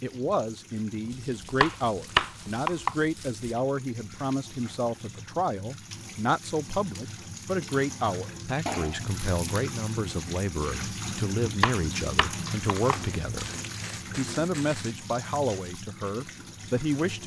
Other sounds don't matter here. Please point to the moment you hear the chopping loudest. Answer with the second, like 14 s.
2 s.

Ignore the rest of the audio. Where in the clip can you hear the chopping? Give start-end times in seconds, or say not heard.
1.6-3.0, 11.6-12.9.